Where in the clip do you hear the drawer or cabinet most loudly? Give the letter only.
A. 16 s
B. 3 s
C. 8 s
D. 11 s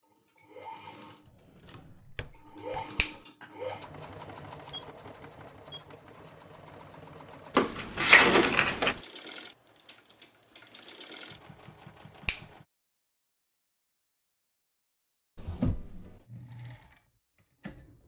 C.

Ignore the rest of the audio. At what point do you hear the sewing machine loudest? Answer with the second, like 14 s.
3 s.